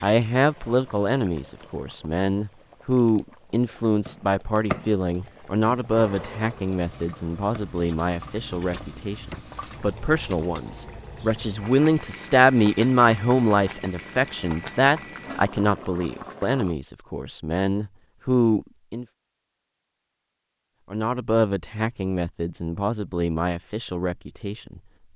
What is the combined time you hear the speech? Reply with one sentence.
The speech can be heard for 23 seconds in total.